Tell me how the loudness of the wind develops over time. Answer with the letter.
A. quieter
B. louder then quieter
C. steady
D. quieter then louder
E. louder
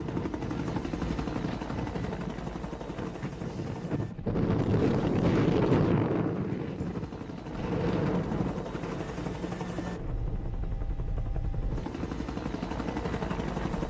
B.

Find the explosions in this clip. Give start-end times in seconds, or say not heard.
7.5-9.0.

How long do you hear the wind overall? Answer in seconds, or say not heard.
14 s.